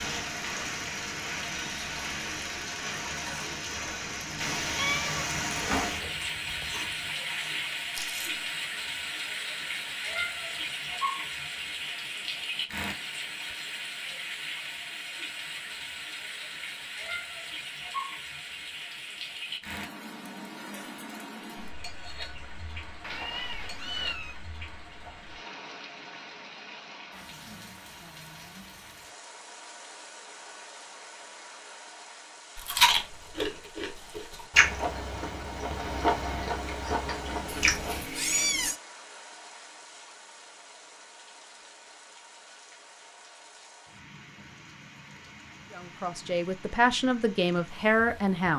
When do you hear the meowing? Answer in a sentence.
You can hear the meowing from 4.7 to 7.1 s, from 23.0 to 24.4 s and from 37.5 to 38.8 s.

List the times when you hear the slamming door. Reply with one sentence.
The slamming door can't be heard in this clip.